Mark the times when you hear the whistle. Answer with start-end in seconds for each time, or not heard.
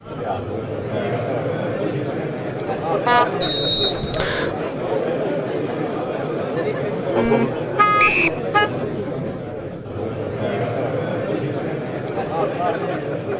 3.4-4.5, 8.0-8.4.